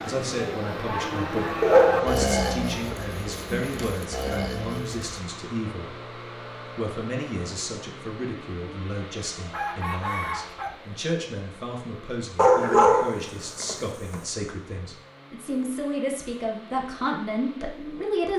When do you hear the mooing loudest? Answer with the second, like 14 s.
2 s.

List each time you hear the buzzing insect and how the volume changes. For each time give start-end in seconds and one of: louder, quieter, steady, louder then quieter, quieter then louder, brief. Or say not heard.
not heard.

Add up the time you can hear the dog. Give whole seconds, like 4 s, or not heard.
3 s.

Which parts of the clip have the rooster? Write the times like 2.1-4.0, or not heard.
9.5-10.8.